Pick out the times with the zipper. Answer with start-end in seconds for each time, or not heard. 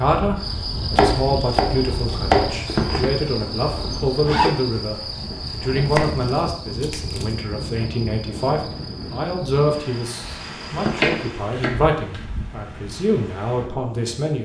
2.6-4.5, 10.8-11.4.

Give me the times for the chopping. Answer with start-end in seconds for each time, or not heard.
0.9-2.6, 5.9-7.3, 10.9-12.2.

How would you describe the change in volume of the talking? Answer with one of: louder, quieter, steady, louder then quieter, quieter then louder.
steady.